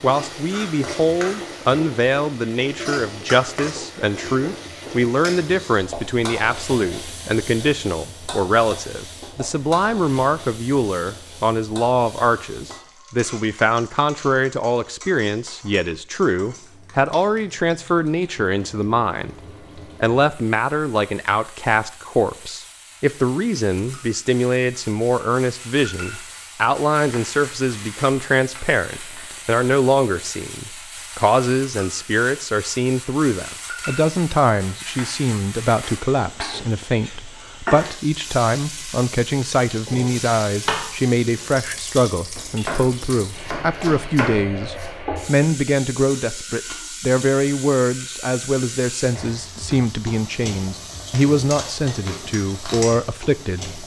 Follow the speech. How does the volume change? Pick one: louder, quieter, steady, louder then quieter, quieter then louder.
steady.